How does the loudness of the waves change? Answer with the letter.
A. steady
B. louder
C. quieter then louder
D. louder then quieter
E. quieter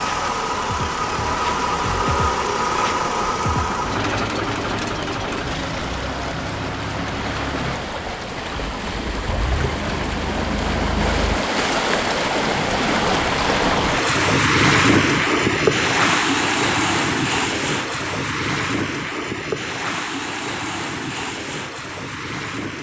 D.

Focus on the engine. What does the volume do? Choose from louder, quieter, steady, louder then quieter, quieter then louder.
quieter.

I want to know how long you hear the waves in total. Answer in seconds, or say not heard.
23 s.